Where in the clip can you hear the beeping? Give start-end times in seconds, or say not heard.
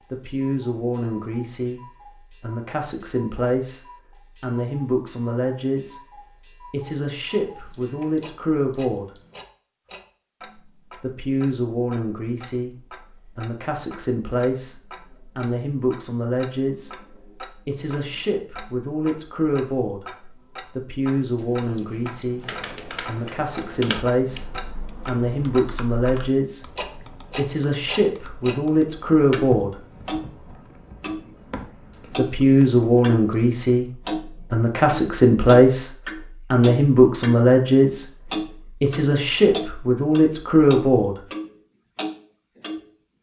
7.5-9.4, 21.4-22.8, 31.9-33.4.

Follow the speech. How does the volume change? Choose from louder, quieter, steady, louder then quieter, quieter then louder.
louder.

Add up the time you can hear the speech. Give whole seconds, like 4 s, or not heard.
36 s.